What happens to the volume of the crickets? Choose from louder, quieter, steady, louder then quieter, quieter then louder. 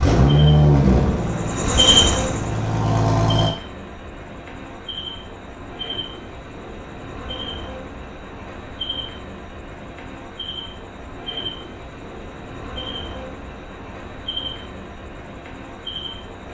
quieter.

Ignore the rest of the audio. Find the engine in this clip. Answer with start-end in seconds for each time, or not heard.
0.0-3.5.